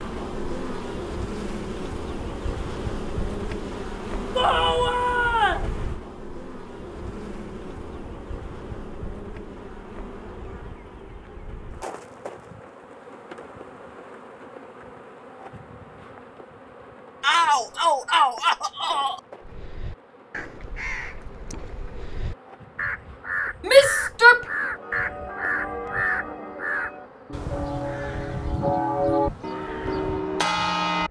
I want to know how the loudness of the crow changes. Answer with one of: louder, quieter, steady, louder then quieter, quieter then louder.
louder then quieter.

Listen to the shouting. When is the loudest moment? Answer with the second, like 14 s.
24 s.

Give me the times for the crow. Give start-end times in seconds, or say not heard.
19.4-30.2.